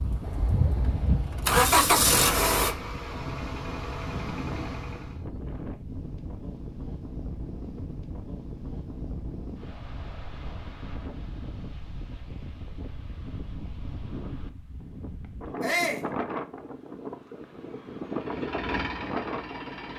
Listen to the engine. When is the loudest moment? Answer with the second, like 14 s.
2 s.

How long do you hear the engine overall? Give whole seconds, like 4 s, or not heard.
7 s.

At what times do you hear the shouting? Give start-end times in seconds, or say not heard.
15.6-16.1.